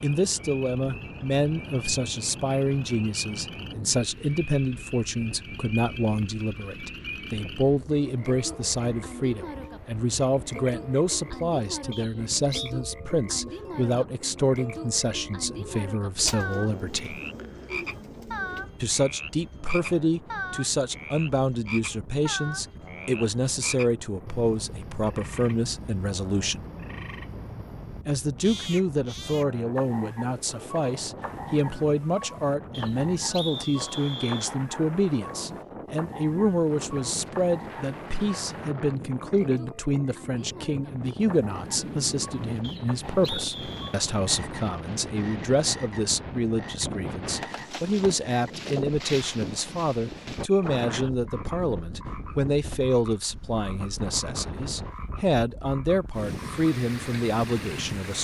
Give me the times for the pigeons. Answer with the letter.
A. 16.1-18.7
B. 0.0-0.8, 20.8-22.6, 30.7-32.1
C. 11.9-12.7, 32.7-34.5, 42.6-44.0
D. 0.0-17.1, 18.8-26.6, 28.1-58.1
A.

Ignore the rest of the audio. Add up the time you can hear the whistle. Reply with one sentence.
The whistle can be heard for 4 seconds in total.